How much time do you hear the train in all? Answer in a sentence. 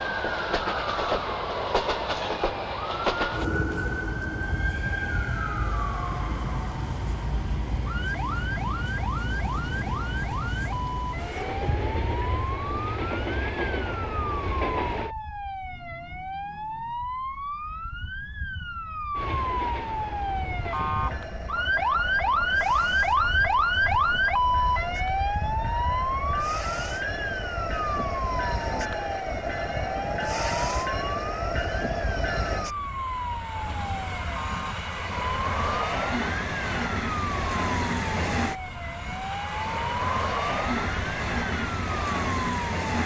The train can be heard for 39 seconds in total.